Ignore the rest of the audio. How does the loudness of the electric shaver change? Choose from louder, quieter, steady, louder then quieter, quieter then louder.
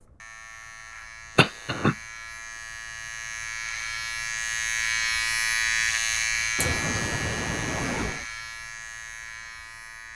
louder then quieter.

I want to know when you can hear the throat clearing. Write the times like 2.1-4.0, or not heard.
1.4-1.9, 6.5-8.2.